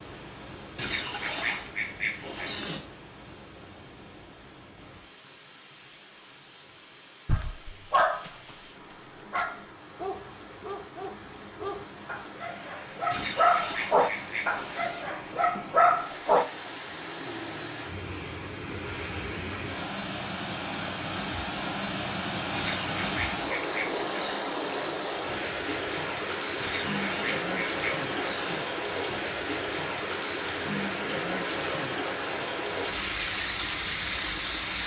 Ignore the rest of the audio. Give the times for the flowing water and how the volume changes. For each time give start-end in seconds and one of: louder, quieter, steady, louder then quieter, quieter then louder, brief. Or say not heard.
0.0-34.8 louder.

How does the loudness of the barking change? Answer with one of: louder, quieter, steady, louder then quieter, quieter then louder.
quieter then louder.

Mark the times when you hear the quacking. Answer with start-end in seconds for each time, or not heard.
0.8-2.8, 13.1-14.8, 22.5-24.5, 26.6-28.6.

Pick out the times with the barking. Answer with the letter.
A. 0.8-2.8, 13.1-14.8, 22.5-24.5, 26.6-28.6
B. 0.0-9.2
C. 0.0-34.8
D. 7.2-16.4
D.